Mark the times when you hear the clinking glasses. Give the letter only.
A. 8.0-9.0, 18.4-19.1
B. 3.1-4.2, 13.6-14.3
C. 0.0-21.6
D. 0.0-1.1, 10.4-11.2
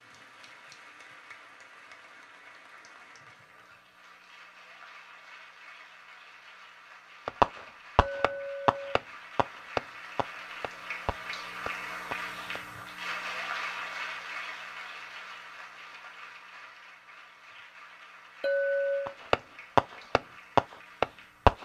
A.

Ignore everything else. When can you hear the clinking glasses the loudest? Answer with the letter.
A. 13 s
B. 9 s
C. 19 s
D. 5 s
C.